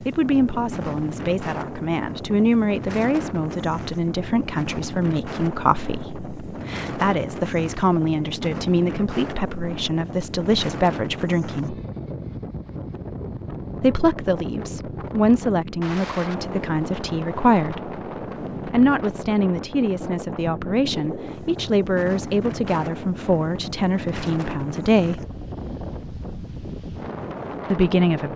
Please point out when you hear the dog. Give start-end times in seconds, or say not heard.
not heard.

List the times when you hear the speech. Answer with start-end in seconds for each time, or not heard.
0.0-11.8, 13.8-17.9, 18.7-25.2, 27.7-28.3.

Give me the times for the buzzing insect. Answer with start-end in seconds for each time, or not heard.
not heard.